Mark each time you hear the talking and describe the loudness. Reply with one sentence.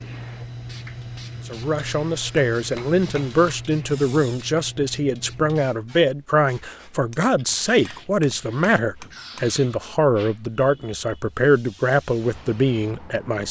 The talking can be heard from 1.4 to 13.4 s, at a steady volume.